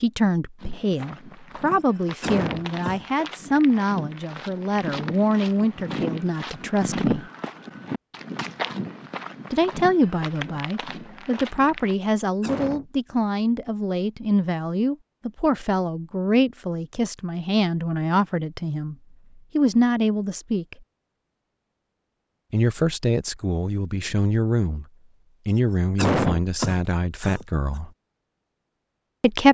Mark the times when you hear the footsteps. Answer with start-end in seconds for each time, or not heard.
0.6-11.9.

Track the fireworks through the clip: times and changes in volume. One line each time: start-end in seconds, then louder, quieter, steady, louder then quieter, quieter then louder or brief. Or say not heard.
not heard.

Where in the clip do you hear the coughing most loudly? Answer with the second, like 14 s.
26 s.